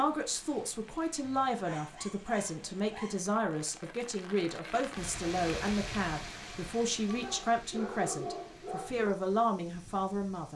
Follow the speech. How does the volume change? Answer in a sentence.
The loudness of the speech stays about the same.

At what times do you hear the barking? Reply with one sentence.
You can hear the barking from 1.2 to 3.3 s and from 7.0 to 9.1 s.